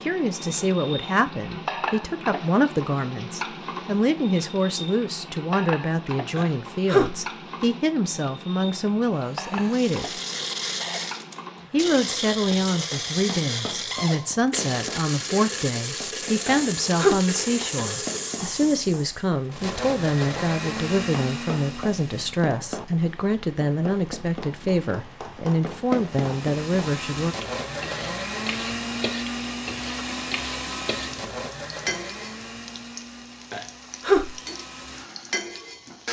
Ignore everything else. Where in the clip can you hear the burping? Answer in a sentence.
You can hear the burping from 6.3 to 7.2 s, from 16.4 to 17.2 s and from 33.5 to 34.4 s.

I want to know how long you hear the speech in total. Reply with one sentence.
The speech can be heard for 26 seconds in total.